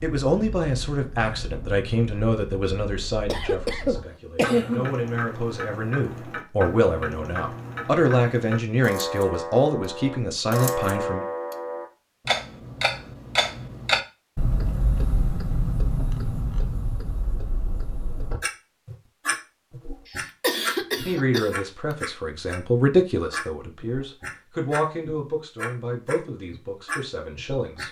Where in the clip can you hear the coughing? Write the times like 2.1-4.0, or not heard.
3.2-4.9, 20.1-21.5.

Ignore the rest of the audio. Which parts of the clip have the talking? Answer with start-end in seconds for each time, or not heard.
0.0-11.2, 21.1-27.8.